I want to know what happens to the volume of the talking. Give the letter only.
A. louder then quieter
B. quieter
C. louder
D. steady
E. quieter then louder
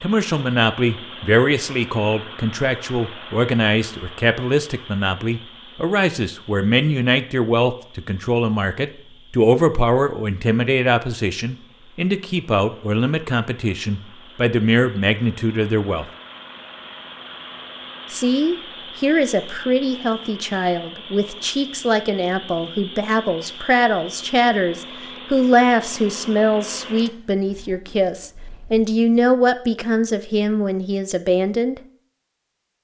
D.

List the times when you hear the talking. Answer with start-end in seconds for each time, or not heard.
0.0-16.1, 18.1-31.8.